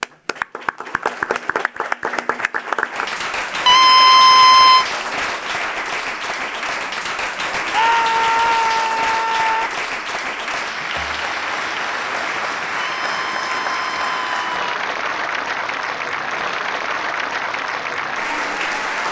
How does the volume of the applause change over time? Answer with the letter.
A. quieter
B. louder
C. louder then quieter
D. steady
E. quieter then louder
D.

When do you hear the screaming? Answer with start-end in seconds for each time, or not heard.
3.6-4.8, 7.7-9.7, 12.8-14.6.